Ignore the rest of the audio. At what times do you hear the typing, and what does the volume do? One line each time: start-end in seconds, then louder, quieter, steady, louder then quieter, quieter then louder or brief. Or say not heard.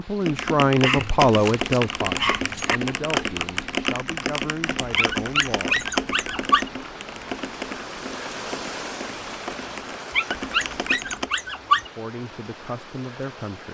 0.2-11.3 quieter.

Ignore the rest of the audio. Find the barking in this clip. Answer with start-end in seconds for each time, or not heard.
0.8-2.8, 5.0-6.7, 10.1-11.9.